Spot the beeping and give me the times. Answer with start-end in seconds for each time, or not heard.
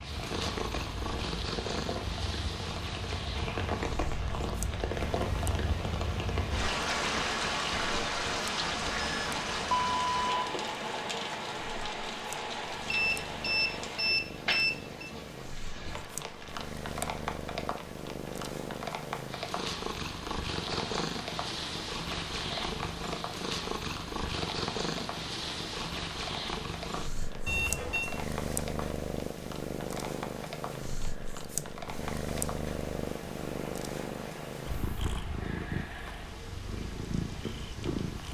9.0-10.5, 12.9-15.1, 27.4-28.1.